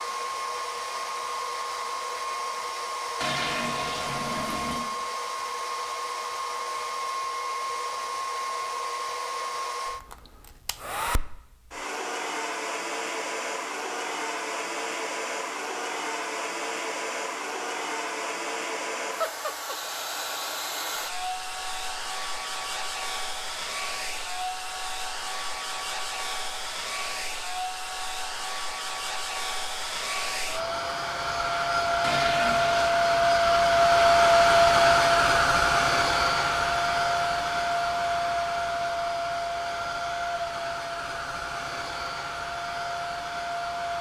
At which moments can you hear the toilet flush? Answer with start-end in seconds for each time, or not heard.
3.2-4.8, 32.0-32.9.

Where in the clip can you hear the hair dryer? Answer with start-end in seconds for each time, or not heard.
0.0-43.9.